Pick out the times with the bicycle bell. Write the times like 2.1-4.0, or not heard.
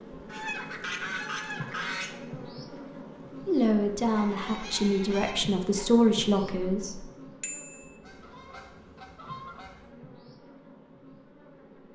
7.4-8.0.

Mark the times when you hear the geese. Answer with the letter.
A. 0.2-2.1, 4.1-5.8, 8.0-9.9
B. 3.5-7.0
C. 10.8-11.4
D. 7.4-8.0
A.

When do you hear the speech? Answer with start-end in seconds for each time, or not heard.
3.5-7.0.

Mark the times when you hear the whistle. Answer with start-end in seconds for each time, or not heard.
not heard.